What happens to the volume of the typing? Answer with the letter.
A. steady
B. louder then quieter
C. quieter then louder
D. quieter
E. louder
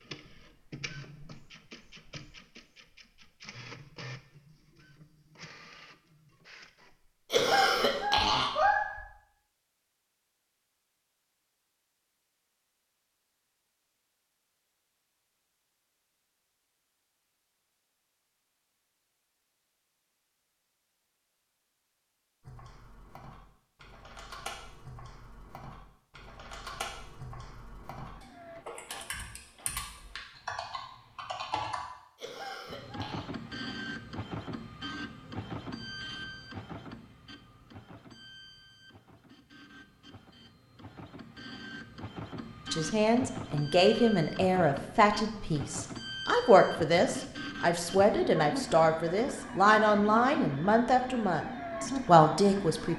E.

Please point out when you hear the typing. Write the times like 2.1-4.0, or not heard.
22.4-31.8.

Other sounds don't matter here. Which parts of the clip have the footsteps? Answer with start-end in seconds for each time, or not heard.
not heard.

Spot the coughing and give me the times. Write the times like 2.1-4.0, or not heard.
7.3-9.0, 32.1-33.2.